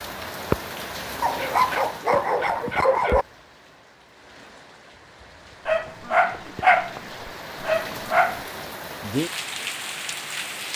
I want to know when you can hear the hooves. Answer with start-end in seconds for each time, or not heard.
not heard.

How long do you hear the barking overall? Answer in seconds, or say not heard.
5 s.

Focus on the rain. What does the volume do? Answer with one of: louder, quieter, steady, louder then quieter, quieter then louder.
quieter then louder.